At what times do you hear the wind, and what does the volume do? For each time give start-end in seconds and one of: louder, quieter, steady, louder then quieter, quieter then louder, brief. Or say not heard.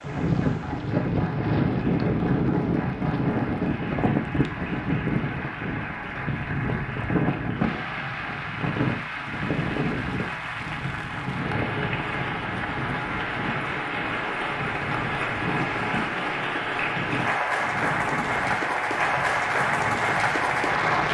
0.0-21.0 quieter.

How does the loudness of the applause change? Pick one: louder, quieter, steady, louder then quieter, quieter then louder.
louder.